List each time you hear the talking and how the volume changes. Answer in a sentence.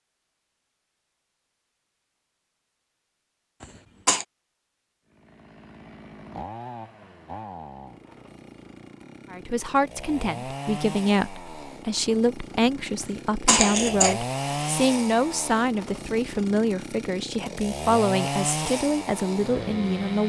The talking can be heard from 9.3 to 20.2 s, at a steady volume.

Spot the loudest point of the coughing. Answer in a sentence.
The loudest moment of the coughing is at 14 seconds.